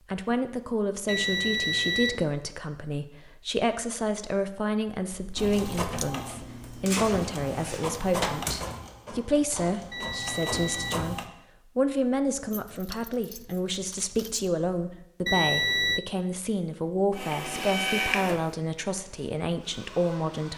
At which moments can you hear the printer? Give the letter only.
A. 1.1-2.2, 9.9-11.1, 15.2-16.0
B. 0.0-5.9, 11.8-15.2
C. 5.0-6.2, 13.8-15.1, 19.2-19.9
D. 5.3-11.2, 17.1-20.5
D.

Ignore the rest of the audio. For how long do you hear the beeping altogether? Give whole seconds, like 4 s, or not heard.
3 s.